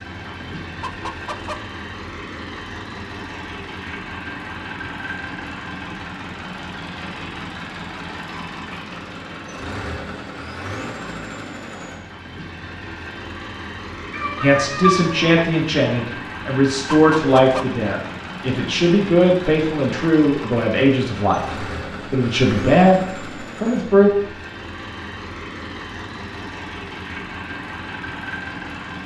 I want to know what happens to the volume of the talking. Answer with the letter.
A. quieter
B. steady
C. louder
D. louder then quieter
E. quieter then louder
B.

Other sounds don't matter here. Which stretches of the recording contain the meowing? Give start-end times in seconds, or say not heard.
14.1-15.4.